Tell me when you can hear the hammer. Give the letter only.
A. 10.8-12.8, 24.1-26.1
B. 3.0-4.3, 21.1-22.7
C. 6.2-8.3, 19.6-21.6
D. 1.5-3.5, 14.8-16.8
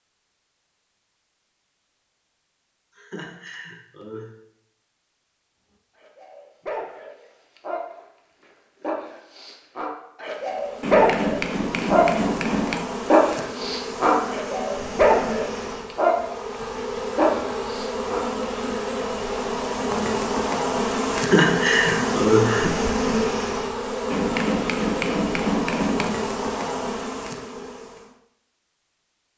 A.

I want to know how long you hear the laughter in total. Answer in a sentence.
You can hear the laughter for 3 seconds altogether.